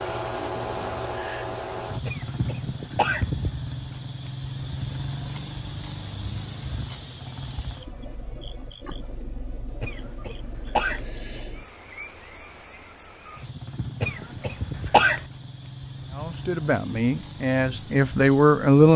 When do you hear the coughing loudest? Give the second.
15 s.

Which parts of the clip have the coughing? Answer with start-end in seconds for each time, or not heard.
2.0-3.2, 9.8-11.1, 14.0-15.2.